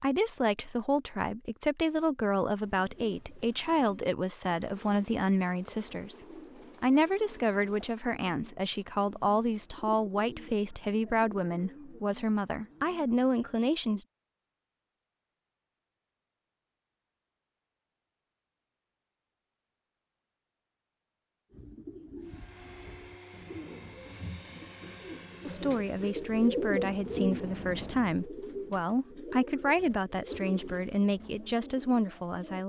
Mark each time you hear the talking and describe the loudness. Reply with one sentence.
You can hear the talking from 0.0 to 14.1 s, at a steady volume; and from 25.4 to 32.6 s, at a steady volume.